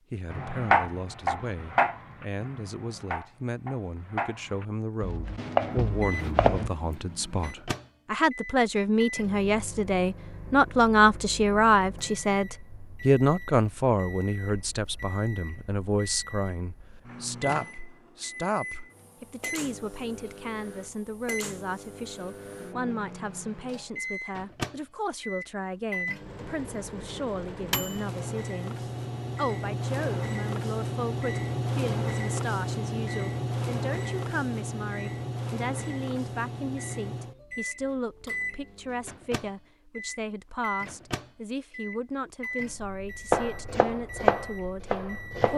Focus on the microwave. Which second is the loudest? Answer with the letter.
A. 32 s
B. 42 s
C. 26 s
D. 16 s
A.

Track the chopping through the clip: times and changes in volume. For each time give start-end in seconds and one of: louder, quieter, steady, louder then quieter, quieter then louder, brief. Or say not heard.
0.3-6.7 quieter then louder
43.3-45.5 brief.